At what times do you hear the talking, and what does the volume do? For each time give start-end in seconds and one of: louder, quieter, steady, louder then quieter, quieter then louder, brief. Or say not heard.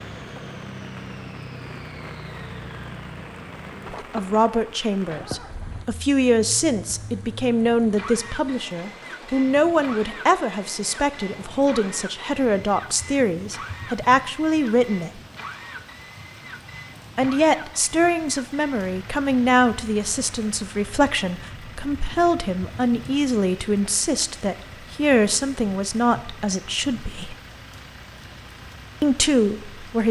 4.1-15.2 steady
17.1-27.4 steady
29.0-30.0 brief.